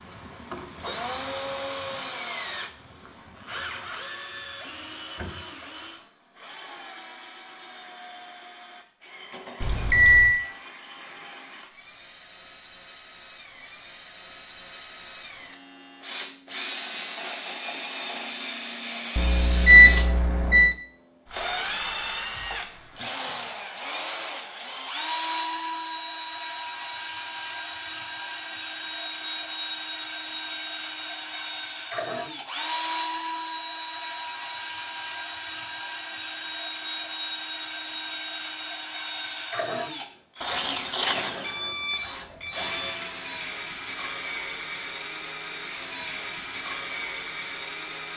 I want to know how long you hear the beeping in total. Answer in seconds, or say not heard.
5 s.